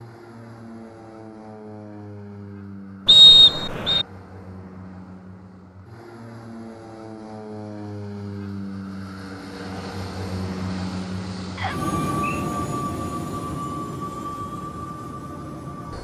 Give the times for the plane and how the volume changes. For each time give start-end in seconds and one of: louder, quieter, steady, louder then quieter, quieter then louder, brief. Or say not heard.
0.0-15.9 louder.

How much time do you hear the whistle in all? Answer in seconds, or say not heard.
2 s.